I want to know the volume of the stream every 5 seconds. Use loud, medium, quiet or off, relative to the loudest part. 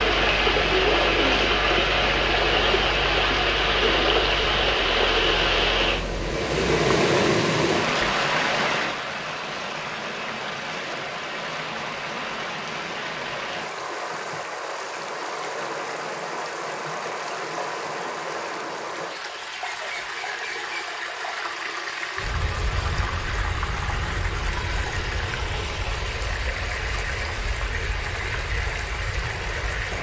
loud, loud, medium, medium, medium, medium.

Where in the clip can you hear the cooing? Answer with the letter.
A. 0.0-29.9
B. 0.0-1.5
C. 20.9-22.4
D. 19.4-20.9
B.